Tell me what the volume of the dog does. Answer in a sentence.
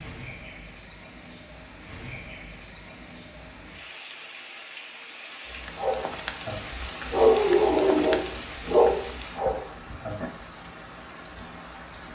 The volume of the dog goes up, then down.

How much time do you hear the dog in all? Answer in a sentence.
You can hear the dog for 5 seconds altogether.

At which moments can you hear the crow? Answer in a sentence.
You can't hear the crow here.